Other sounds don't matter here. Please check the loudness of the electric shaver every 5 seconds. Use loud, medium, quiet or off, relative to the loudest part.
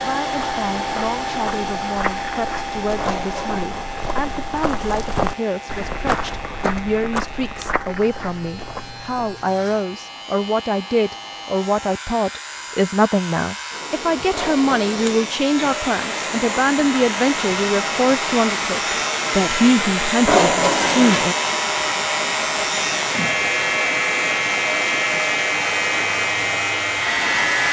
quiet, quiet, quiet, medium, loud, loud.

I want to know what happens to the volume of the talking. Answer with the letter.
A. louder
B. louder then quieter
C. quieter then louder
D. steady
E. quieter
A.